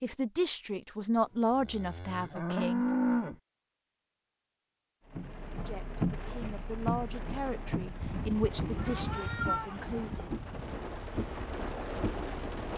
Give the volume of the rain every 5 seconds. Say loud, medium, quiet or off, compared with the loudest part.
off, loud, loud.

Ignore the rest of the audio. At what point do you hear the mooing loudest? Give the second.
3 s.